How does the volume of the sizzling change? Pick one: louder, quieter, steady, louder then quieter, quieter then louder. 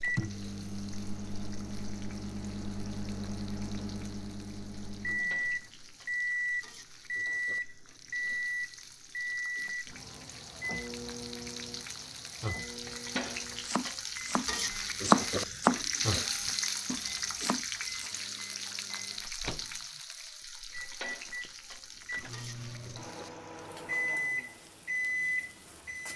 louder then quieter.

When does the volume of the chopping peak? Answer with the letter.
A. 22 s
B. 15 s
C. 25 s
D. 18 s
B.